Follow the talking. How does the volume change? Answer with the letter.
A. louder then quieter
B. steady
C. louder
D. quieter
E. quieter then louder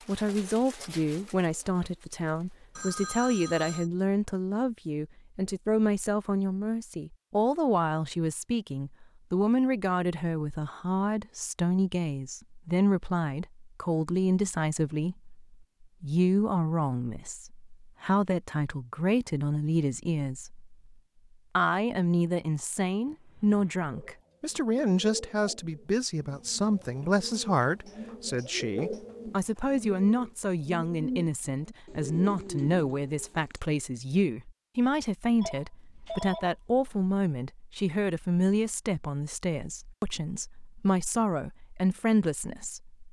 B.